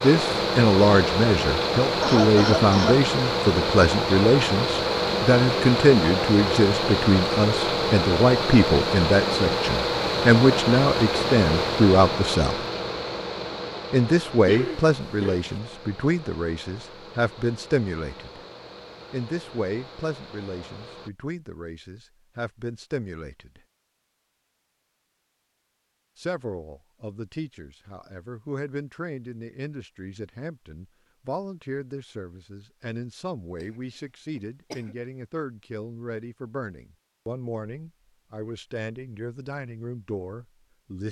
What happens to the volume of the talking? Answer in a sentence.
The volume of the talking goes down.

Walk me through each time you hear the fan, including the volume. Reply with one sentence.
You can hear the fan from 0.0 to 21.1 s, getting quieter.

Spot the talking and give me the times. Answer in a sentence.
You can hear the talking from 0.0 to 12.6 s, from 13.9 to 18.4 s, from 19.1 to 23.6 s and from 26.1 to 41.0 s.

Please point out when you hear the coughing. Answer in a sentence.
You can hear the coughing from 1.8 to 3.0 s, from 14.4 to 15.6 s and from 34.4 to 35.0 s.